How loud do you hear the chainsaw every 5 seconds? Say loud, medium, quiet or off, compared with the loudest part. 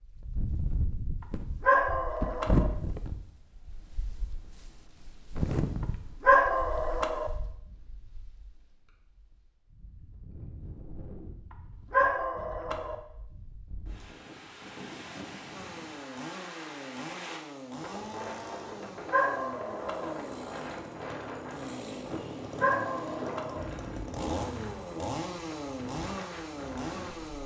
off, off, off, medium, loud, loud.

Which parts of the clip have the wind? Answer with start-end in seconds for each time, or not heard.
0.0-27.4.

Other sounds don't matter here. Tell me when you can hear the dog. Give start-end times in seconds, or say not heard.
1.6-2.7, 6.2-7.3, 11.9-12.9, 19.1-20.1, 22.6-23.6.